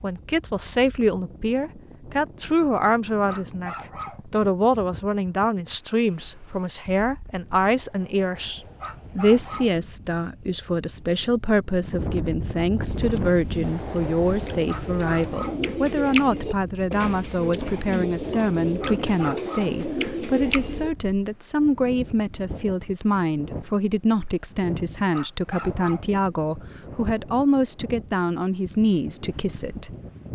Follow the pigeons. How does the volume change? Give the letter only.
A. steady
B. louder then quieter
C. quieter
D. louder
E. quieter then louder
D.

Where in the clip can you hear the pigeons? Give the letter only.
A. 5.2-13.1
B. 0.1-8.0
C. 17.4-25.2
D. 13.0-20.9
D.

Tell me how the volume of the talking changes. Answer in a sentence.
The loudness of the talking stays about the same.